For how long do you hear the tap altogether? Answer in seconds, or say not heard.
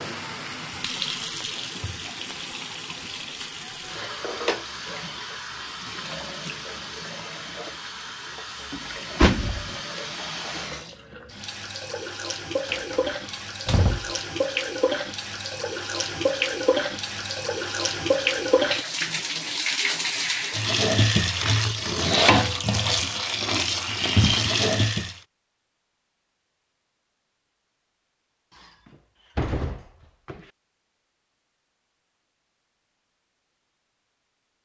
25 s.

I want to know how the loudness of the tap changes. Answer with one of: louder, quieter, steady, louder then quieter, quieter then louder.
louder.